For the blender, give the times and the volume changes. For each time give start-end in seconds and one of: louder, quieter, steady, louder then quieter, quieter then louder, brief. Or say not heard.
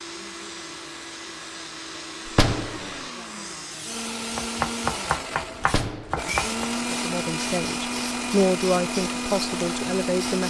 0.0-10.4 louder.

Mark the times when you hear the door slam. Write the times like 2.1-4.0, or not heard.
2.2-3.0, 5.6-6.3.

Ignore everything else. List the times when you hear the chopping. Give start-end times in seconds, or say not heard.
4.3-6.7.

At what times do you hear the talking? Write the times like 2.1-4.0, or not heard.
6.9-10.4.